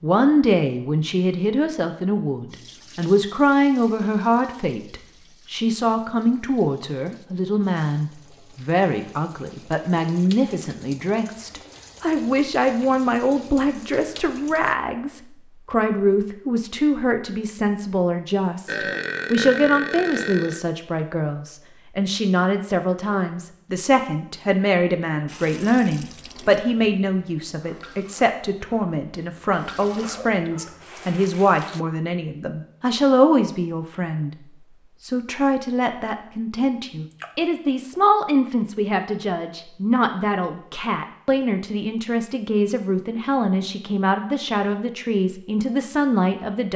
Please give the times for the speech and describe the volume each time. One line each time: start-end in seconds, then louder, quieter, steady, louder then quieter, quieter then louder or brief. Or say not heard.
0.0-46.7 steady.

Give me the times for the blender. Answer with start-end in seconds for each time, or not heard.
not heard.